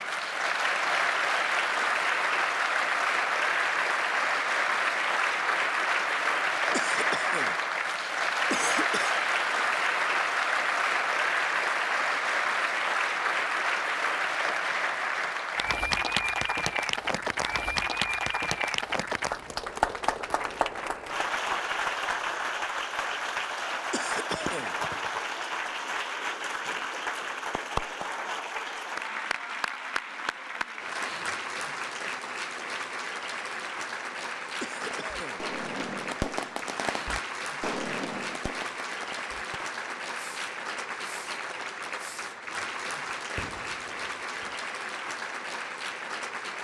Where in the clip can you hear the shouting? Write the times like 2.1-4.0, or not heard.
not heard.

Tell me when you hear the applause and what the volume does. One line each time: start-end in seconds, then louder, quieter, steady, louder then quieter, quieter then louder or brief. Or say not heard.
0.0-46.5 quieter.